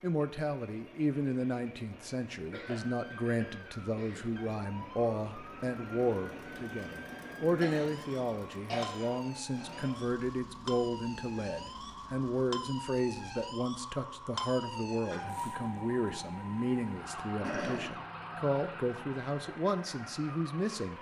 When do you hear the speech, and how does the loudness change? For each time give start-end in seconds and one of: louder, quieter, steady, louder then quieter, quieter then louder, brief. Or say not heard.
0.0-20.9 steady.